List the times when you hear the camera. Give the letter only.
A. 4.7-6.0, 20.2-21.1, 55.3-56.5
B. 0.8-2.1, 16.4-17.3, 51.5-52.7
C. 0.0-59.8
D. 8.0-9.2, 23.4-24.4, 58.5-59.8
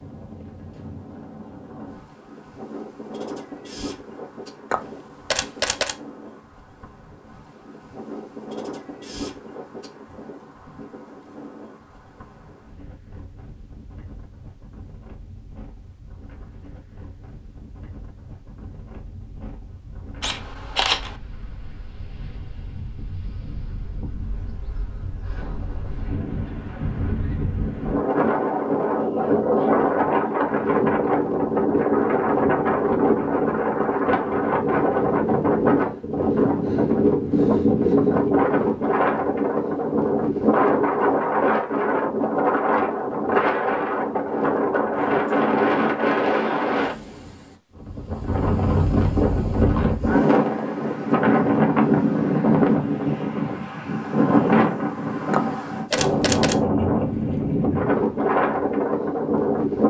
A.